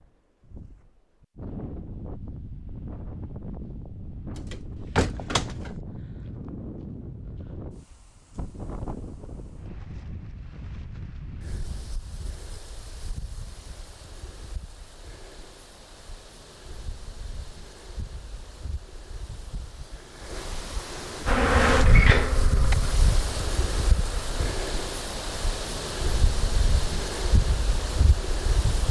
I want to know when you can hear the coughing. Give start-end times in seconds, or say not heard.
not heard.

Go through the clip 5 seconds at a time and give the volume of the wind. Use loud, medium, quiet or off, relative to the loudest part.
medium, medium, quiet, quiet, loud, loud.